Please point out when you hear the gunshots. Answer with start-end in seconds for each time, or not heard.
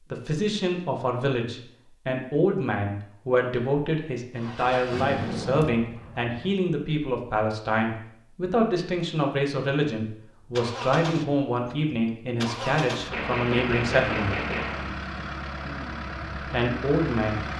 13.1-14.9.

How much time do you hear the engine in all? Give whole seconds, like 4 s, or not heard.
9 s.